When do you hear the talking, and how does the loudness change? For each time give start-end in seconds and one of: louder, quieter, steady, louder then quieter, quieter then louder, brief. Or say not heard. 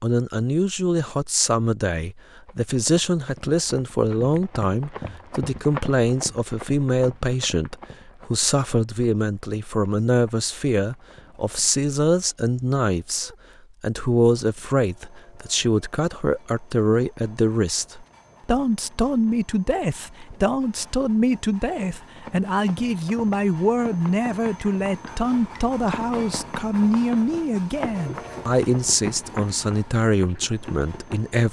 0.0-31.4 steady.